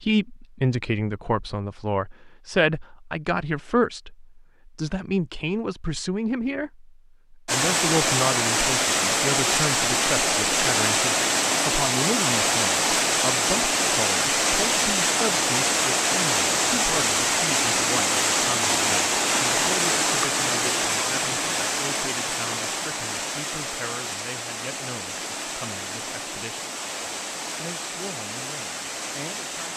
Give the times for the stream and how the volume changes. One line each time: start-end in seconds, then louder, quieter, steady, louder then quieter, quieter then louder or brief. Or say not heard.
7.5-29.7 quieter.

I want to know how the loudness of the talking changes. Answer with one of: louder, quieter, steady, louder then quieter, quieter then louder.
quieter.